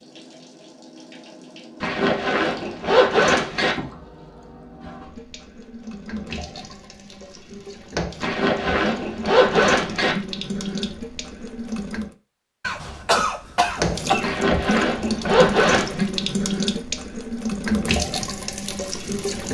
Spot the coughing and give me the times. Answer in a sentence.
The coughing can be heard from 12.6 to 14.3 s.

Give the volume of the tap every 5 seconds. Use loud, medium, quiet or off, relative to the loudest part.
quiet, medium, loud, loud.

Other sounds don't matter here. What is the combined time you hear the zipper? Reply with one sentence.
You can hear the zipper for 6 seconds altogether.